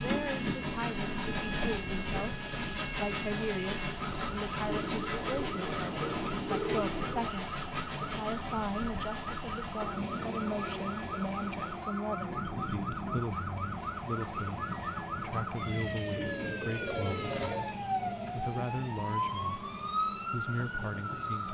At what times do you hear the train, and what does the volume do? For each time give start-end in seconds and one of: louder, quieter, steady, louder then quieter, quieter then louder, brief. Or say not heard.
0.0-21.5 quieter.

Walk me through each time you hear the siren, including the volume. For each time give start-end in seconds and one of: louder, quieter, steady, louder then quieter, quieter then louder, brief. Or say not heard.
0.0-21.5 louder.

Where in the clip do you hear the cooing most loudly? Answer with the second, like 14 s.
7 s.